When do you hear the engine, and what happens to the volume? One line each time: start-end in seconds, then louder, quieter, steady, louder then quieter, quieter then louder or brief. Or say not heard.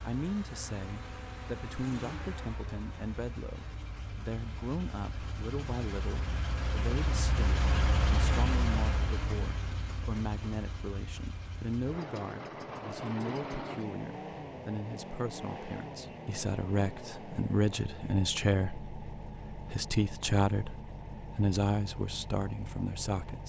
0.0-23.4 louder then quieter.